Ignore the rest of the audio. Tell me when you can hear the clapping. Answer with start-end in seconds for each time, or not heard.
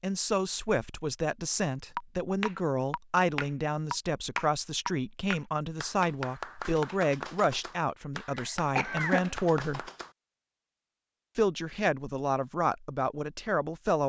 1.9-10.1.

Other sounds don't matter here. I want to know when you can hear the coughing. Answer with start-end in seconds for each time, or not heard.
8.3-9.3.